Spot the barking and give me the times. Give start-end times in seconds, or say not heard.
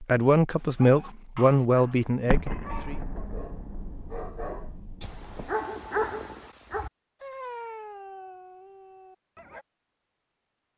0.6-9.7.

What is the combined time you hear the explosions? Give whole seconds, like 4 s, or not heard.
3 s.